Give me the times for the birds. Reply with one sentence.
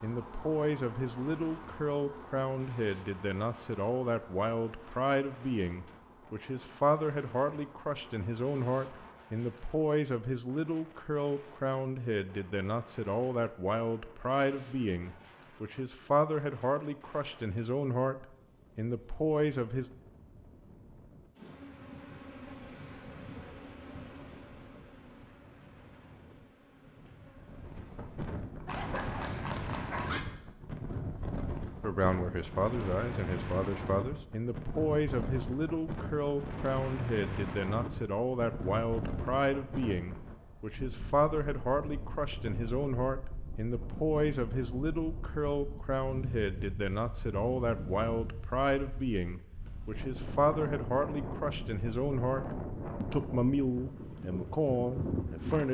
You can't hear the birds here.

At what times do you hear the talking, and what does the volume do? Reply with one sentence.
You can hear the talking from 0.0 to 19.9 s, at a steady volume; and from 31.8 to 55.7 s, at a steady volume.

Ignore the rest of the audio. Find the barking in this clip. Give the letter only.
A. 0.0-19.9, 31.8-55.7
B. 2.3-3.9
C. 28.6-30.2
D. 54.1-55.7
C.